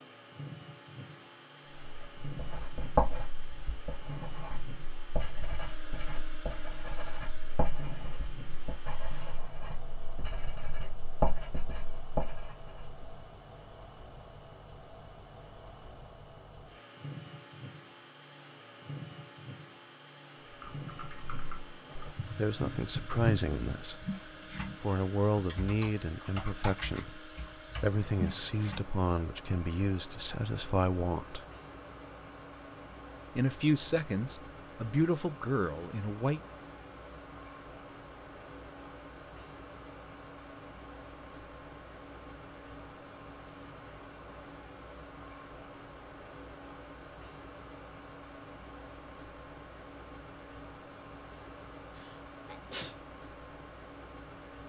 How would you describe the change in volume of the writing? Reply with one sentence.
The volume of the writing goes down, then up.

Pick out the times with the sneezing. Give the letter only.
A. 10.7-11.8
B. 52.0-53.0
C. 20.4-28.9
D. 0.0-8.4
B.